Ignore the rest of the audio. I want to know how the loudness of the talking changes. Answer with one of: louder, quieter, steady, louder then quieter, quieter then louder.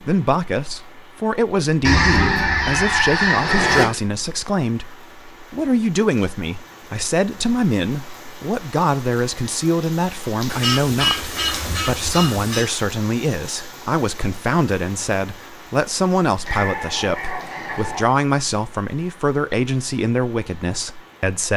steady.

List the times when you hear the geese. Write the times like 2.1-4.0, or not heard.
1.8-3.9, 10.4-12.7, 16.4-18.1.